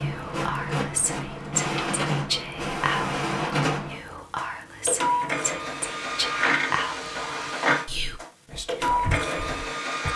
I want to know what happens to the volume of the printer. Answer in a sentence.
The volume of the printer stays about the same.